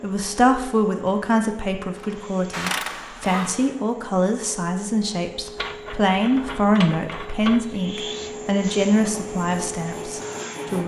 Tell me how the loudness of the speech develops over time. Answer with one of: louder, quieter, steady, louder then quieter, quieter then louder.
steady.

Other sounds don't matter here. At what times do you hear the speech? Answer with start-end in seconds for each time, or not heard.
0.0-10.8.